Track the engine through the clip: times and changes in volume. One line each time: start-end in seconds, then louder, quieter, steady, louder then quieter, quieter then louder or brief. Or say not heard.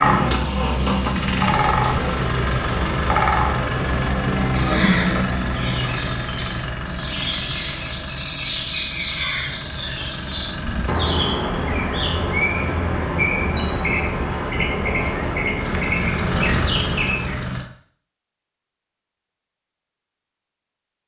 0.0-11.0 quieter
15.6-17.7 brief.